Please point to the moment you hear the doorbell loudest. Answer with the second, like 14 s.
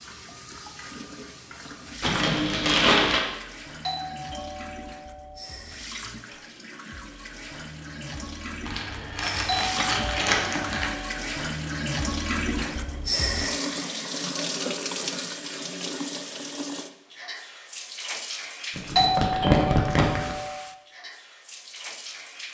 19 s.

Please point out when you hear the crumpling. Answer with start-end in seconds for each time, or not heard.
2.0-3.2, 8.7-10.9, 18.8-20.4.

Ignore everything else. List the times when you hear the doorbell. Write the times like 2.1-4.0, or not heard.
3.9-5.5, 9.4-11.2, 18.9-20.6.